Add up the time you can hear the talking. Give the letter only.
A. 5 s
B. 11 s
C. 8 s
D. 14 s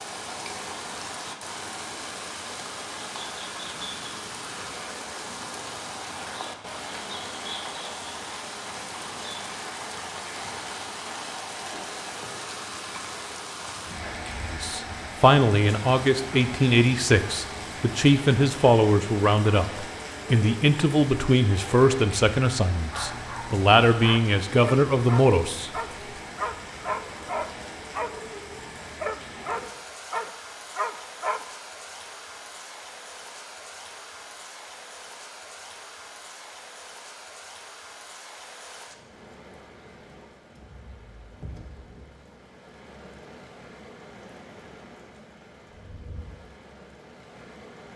B.